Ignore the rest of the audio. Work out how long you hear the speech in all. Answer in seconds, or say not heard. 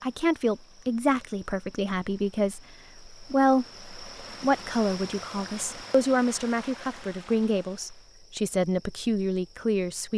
10 s.